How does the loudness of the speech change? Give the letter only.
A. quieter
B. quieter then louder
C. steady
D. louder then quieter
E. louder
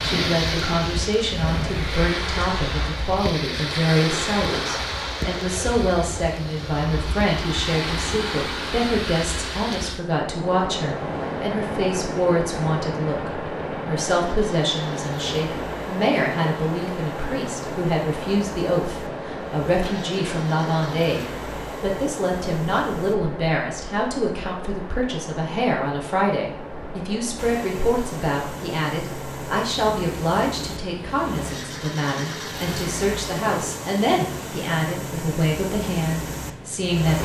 C.